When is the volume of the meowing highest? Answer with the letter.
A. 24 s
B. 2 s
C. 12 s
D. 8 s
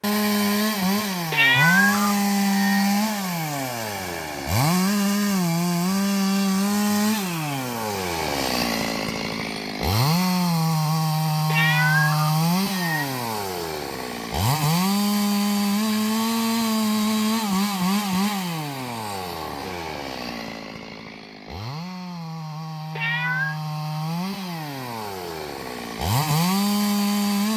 B.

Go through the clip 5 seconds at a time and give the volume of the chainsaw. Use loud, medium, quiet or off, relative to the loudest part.
loud, loud, loud, loud, medium, loud.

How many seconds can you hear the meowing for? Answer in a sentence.
You can hear the meowing for 4 seconds altogether.